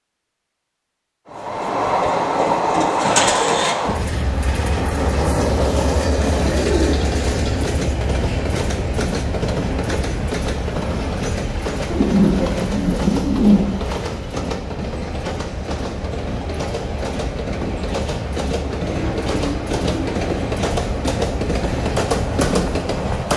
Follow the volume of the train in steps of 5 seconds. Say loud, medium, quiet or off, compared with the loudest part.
loud, loud, medium, medium, loud.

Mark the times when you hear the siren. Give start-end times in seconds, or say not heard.
not heard.